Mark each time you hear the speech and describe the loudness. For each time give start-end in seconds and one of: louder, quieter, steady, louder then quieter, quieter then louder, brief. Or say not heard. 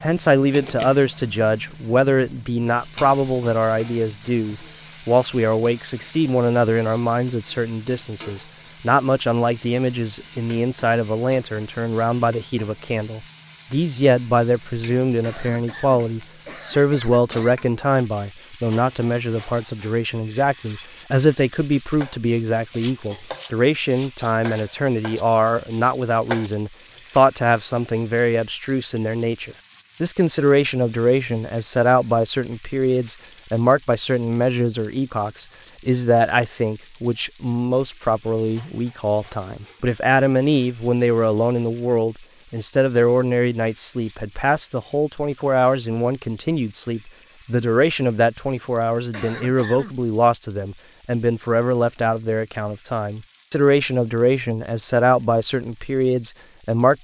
0.0-56.9 steady.